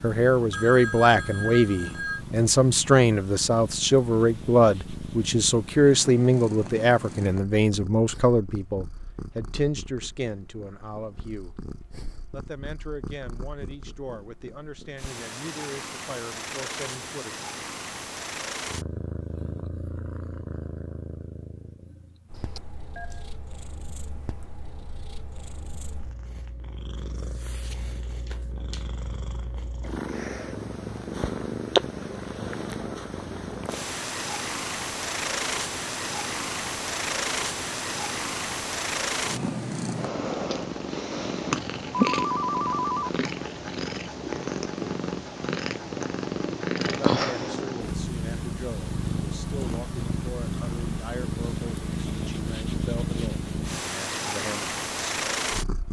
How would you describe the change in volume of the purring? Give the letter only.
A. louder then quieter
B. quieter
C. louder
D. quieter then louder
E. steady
C.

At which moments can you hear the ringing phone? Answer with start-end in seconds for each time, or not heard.
0.5-2.2, 22.3-23.2, 41.9-43.1.